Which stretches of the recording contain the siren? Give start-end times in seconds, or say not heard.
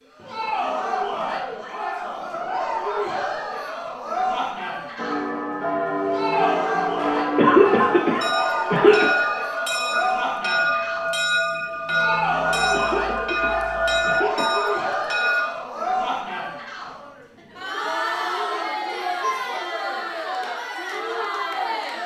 not heard.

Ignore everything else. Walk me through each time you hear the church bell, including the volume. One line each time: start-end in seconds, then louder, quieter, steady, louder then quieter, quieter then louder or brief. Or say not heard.
5.0-15.5 steady.